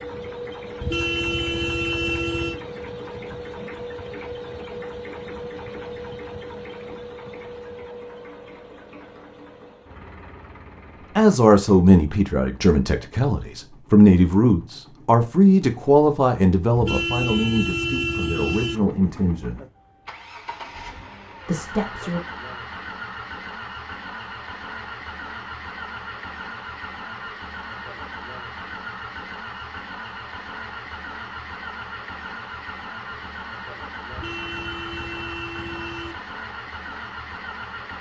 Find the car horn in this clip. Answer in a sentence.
The car horn can be heard from 0.8 to 2.6 s, from 16.8 to 18.8 s and from 34.1 to 36.1 s.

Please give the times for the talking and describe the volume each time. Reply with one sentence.
The talking can be heard from 11.2 to 19.6 s, getting quieter; and briefly from 21.4 to 22.2 s.